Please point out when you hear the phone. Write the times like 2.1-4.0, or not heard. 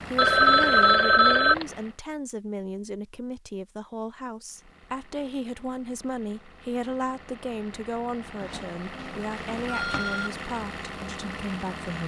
0.1-1.6, 8.4-10.3.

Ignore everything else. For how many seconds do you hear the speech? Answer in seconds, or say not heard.
12 s.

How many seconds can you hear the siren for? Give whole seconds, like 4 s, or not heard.
not heard.